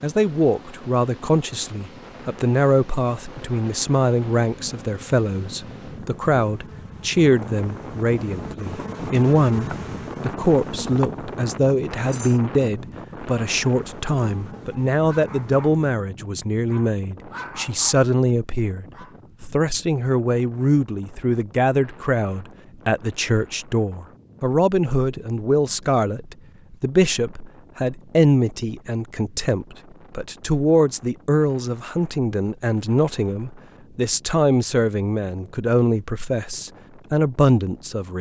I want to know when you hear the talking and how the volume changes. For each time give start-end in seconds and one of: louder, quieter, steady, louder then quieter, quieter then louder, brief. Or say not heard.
0.0-38.1 steady.